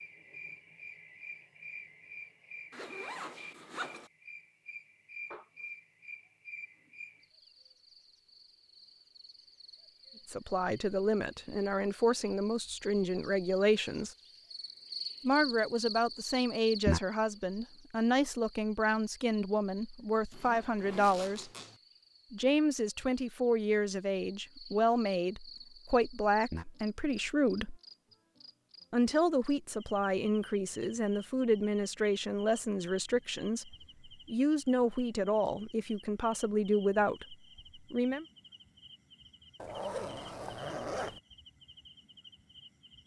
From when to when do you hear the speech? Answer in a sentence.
The speech can be heard from 10.2 to 14.2 s, from 15.2 to 21.5 s, from 22.3 to 27.8 s and from 28.9 to 38.2 s.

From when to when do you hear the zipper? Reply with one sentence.
The zipper can be heard from 2.7 to 4.1 s, from 20.3 to 21.8 s and from 39.5 to 41.2 s.